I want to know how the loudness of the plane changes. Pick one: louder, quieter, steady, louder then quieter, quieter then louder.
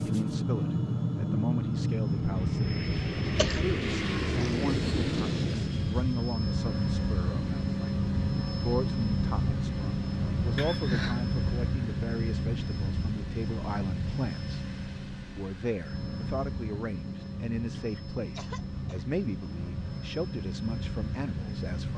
quieter.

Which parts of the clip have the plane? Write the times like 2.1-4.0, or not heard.
0.0-21.9.